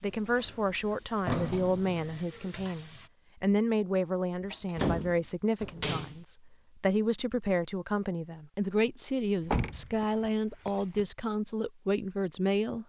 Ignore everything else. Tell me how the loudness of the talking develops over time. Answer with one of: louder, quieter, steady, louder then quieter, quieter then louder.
steady.